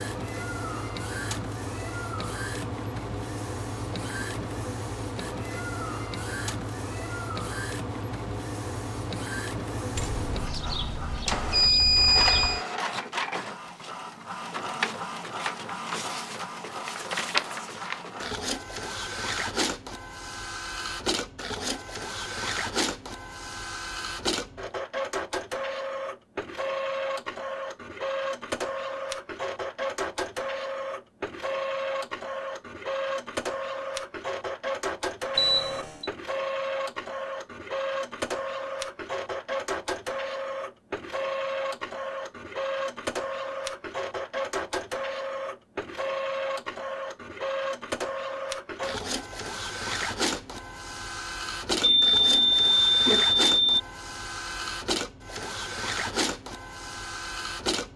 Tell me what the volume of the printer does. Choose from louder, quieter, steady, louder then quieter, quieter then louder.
steady.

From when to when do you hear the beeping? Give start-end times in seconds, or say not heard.
9.9-12.7, 35.4-36.1, 51.8-53.8.